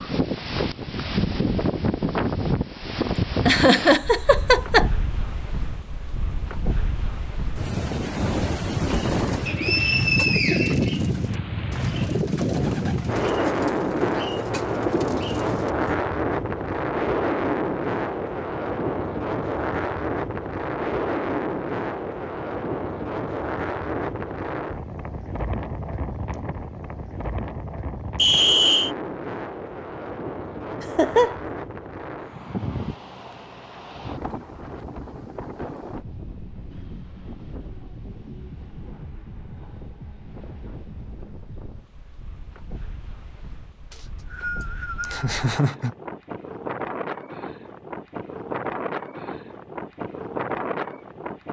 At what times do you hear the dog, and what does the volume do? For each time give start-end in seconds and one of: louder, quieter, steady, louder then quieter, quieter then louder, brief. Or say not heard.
not heard.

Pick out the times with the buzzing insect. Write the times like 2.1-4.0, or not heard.
not heard.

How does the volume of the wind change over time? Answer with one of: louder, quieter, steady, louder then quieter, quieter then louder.
quieter.